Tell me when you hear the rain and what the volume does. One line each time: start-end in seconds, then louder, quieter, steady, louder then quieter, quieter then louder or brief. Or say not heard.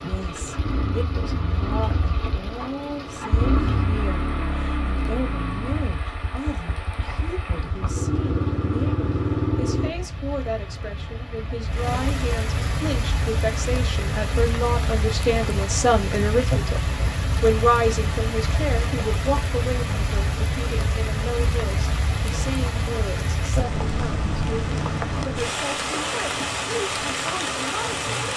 0.0-28.3 louder.